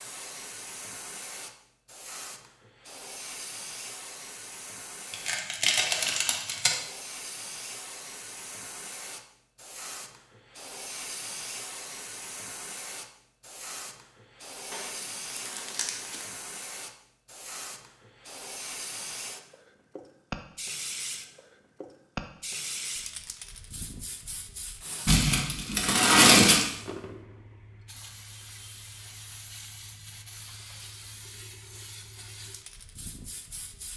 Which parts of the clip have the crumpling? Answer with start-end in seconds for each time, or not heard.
5.1-6.8, 14.7-16.2, 25.1-26.6.